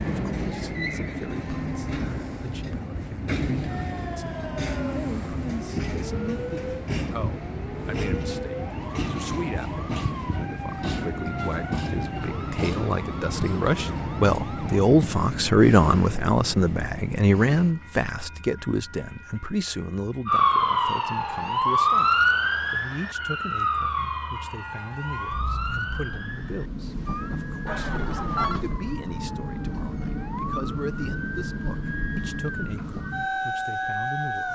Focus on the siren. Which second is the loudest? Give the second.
22 s.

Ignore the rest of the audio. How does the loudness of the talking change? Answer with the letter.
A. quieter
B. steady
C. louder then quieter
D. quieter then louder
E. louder
C.